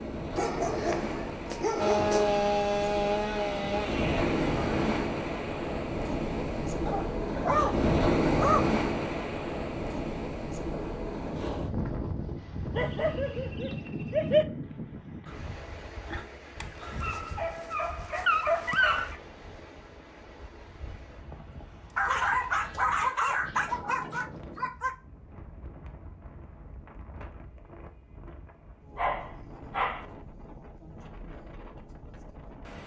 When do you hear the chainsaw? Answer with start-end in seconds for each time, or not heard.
1.8-4.8.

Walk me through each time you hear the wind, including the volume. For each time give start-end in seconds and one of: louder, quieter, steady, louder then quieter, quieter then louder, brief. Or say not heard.
0.0-32.8 quieter.